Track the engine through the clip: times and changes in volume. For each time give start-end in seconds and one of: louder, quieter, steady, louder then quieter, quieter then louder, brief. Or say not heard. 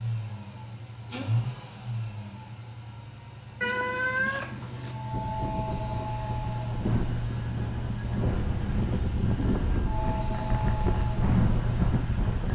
0.0-12.4 quieter then louder.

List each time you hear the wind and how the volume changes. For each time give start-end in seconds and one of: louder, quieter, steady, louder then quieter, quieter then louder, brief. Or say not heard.
5.1-12.4 louder.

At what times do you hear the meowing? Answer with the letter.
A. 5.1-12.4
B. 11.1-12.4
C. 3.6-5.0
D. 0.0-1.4
C.